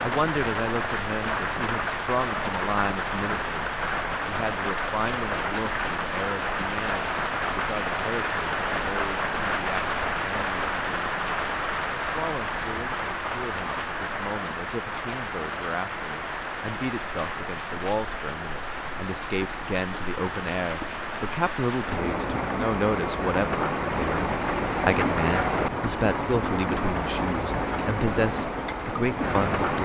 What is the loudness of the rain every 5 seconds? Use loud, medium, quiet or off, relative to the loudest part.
loud, loud, loud, medium, loud, loud.